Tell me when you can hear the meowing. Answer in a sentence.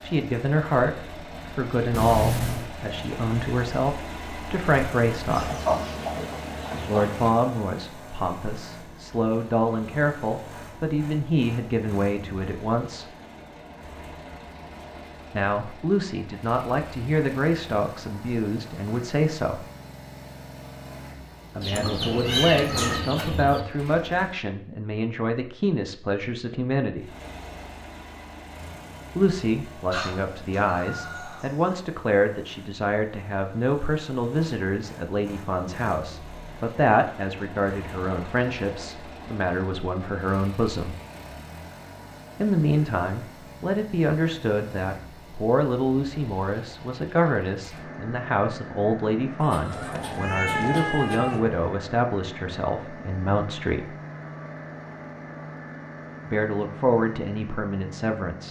The meowing can be heard from 1.9 to 2.7 s, from 21.7 to 23.1 s and from 49.7 to 51.6 s.